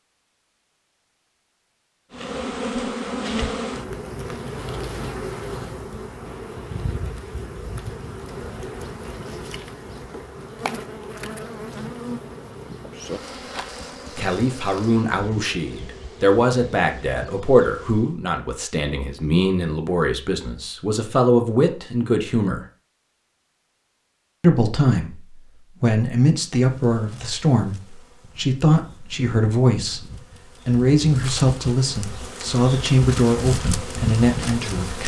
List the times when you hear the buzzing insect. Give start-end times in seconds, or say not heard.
2.1-18.1, 26.6-35.0.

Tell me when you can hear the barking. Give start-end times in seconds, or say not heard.
not heard.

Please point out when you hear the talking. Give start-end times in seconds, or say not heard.
14.2-22.6, 24.4-30.1, 30.6-35.0.